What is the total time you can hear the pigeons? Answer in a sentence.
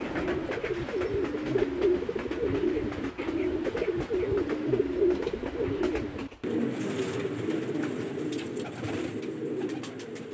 The pigeons can be heard for 10 seconds in total.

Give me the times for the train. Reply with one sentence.
The train can be heard from 0.0 to 6.5 s.